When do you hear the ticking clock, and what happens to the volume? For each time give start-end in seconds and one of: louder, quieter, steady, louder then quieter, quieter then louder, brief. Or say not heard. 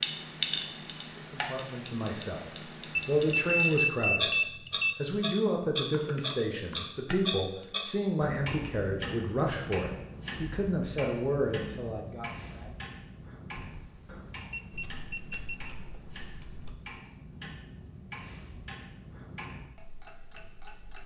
0.0-21.0 quieter.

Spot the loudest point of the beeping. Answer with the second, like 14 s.
4 s.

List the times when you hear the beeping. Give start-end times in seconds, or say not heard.
3.0-5.0, 13.6-15.8.